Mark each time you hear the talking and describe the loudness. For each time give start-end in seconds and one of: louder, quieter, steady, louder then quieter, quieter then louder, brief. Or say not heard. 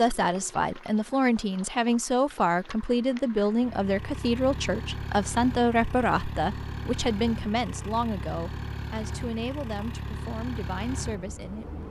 0.0-11.8 quieter.